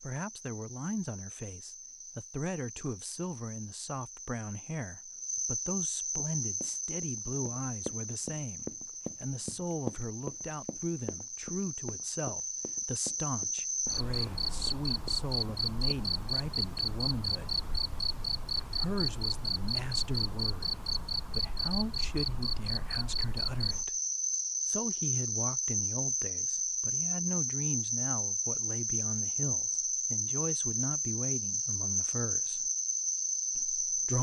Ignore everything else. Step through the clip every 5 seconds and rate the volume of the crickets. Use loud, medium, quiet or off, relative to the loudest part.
quiet, medium, medium, loud, loud, loud, loud.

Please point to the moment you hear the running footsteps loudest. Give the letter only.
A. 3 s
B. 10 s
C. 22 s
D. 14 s
B.